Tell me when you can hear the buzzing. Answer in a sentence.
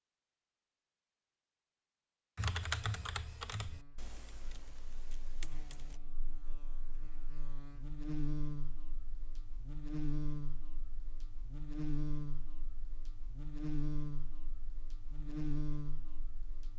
The buzzing can be heard from 3.6 to 16.7 s.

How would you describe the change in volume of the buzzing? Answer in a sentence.
The volume of the buzzing goes up.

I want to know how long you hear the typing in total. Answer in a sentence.
You can hear the typing for 4 seconds altogether.